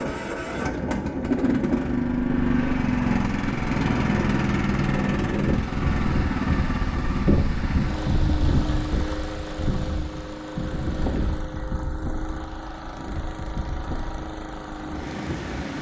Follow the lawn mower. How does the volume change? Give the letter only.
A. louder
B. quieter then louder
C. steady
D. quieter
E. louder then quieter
D.